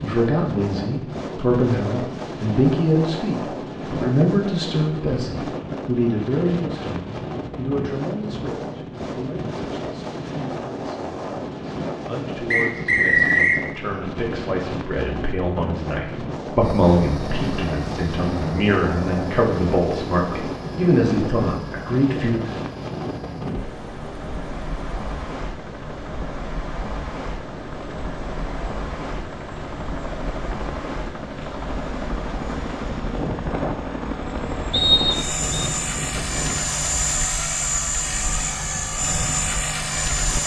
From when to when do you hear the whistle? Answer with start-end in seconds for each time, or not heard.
12.5-13.6, 34.7-35.5.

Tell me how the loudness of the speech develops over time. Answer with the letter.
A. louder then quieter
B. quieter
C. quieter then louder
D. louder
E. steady
C.